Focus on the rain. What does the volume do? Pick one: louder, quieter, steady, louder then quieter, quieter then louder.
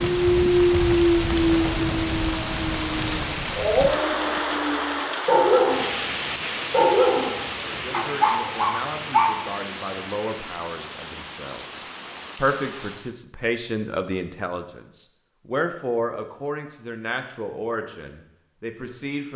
quieter.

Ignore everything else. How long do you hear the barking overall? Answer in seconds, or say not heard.
9 s.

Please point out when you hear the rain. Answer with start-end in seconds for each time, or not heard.
0.0-13.2.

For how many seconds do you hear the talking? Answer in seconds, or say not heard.
12 s.